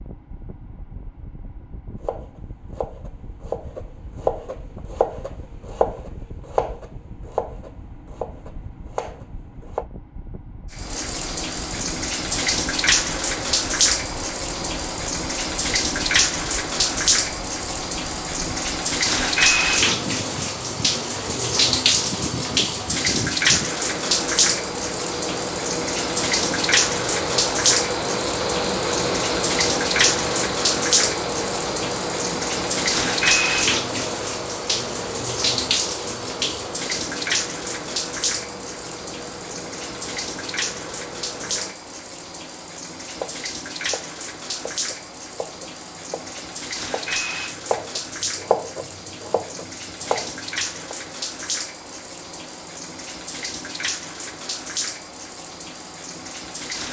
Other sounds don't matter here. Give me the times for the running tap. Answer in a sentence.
The running tap can be heard from 10.7 to 56.8 s.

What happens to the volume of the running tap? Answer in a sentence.
The volume of the running tap goes down.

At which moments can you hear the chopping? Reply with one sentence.
You can hear the chopping from 2.0 to 9.8 s and from 43.1 to 51.0 s.